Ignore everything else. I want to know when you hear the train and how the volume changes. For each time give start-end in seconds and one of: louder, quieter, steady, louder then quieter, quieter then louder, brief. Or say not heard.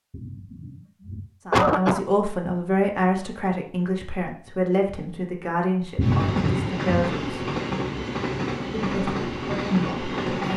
6.0-10.5 steady.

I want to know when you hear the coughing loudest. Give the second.
2 s.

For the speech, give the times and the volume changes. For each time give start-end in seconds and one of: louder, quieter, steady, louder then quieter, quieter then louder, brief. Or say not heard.
1.4-7.2 quieter
8.7-10.5 brief.